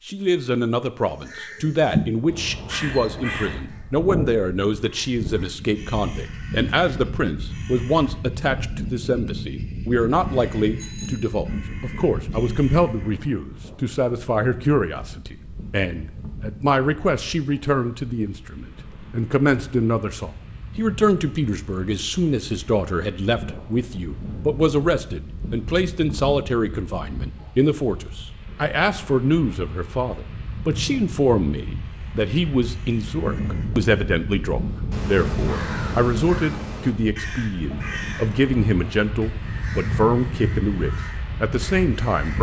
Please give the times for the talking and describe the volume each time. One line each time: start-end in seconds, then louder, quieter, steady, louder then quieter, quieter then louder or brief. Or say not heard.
0.1-42.3 steady.